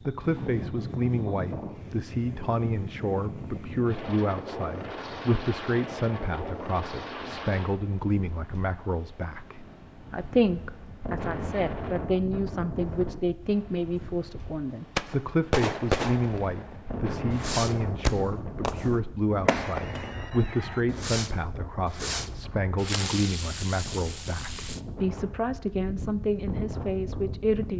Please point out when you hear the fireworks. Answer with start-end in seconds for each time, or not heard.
14.9-21.3, 21.9-24.8.